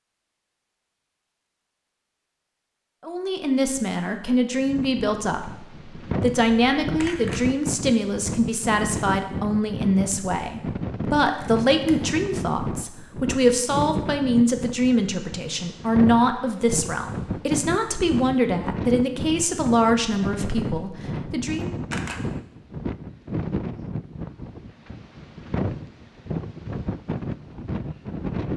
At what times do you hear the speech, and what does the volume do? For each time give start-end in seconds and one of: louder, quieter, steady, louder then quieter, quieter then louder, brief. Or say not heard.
3.0-21.7 steady.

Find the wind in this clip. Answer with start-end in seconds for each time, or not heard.
4.6-28.5.